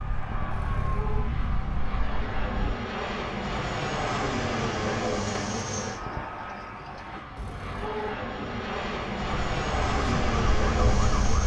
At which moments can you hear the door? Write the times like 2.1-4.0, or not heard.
5.3-7.3.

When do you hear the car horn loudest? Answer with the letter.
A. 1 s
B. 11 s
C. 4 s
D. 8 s
D.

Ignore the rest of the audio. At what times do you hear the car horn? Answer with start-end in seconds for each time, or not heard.
0.5-1.3, 7.3-8.2.